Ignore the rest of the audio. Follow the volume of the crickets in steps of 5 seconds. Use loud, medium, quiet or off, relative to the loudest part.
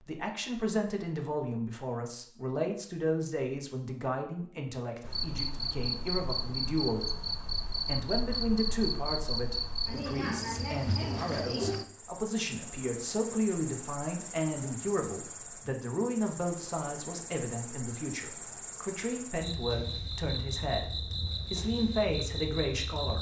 off, loud, loud, medium, loud.